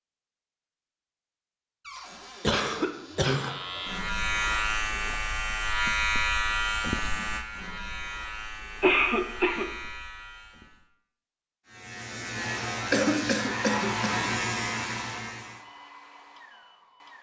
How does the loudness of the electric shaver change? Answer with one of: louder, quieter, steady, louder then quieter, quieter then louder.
quieter then louder.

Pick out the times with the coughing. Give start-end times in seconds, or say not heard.
2.4-3.5, 8.8-9.7, 12.9-14.3.